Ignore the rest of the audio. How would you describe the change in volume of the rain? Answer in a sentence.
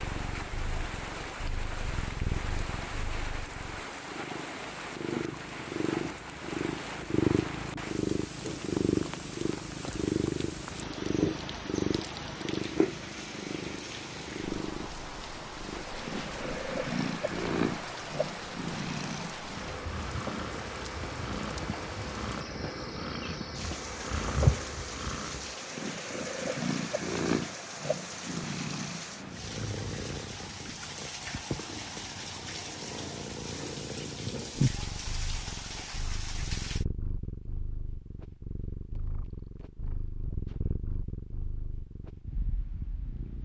The volume of the rain stays about the same.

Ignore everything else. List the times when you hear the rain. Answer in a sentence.
The rain can be heard from 0.0 to 36.9 s.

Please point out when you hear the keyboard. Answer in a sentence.
The keyboard can't be heard in this clip.